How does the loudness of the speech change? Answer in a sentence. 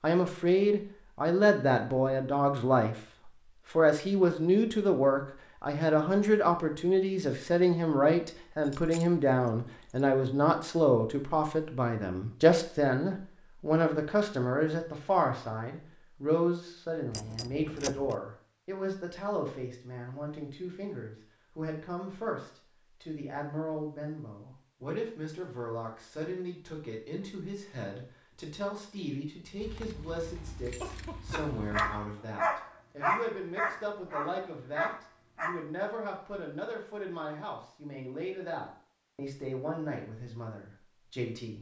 The volume of the speech goes down.